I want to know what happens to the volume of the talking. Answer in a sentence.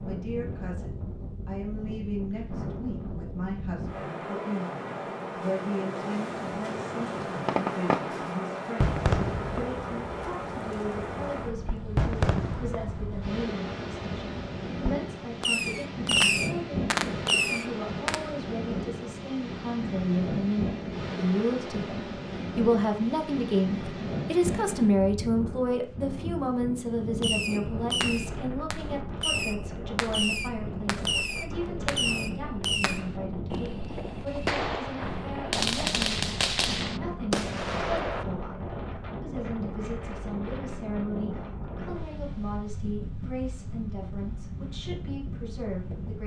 The volume of the talking goes up, then down.